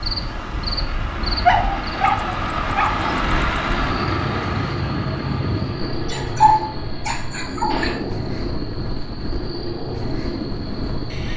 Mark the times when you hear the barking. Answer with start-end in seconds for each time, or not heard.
1.1-3.2, 6.1-7.9.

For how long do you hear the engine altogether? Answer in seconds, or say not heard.
11 s.